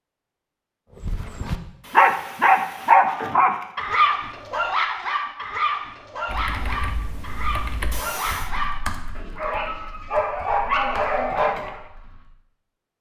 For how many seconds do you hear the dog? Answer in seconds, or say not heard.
11 s.